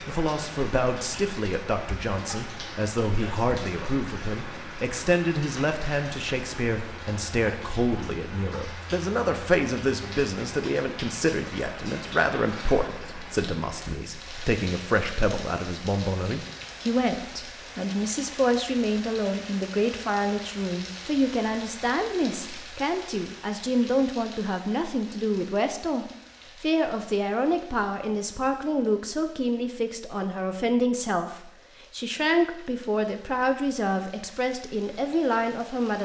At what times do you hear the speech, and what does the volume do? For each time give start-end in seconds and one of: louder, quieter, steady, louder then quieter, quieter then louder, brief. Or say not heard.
0.0-36.0 steady.